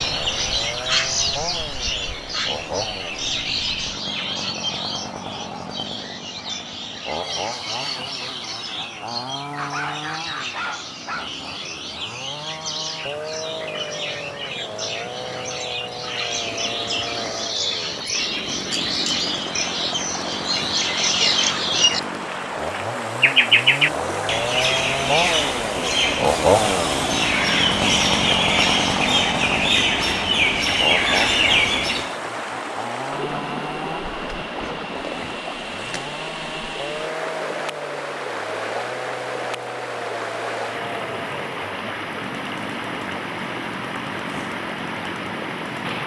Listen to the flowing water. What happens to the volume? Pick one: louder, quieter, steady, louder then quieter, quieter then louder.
louder.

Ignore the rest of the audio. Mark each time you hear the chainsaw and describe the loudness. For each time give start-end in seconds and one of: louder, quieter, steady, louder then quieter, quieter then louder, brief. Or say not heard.
0.0-46.0 louder then quieter.